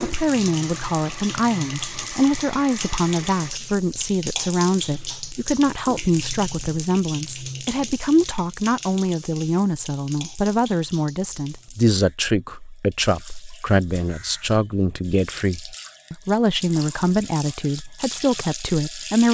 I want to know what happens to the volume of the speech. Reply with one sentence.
The volume of the speech stays about the same.